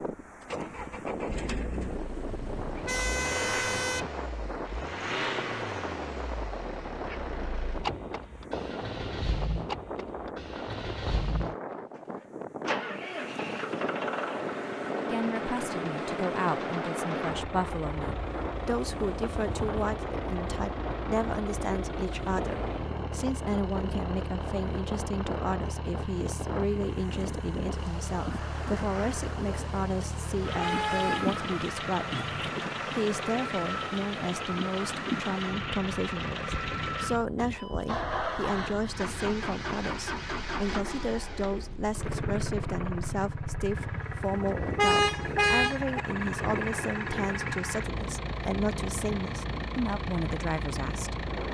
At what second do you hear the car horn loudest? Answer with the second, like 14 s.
45 s.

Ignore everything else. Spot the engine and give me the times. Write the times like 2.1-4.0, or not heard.
0.2-51.4.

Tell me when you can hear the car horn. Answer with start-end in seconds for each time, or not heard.
2.2-4.1, 30.5-32.5, 44.1-46.0.